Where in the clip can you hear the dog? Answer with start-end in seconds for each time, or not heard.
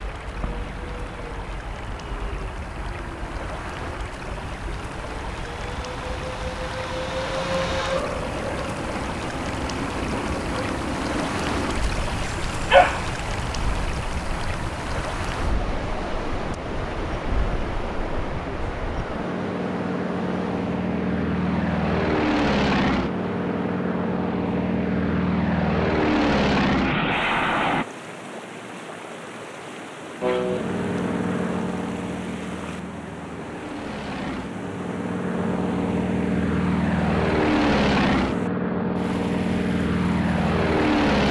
12.2-13.1.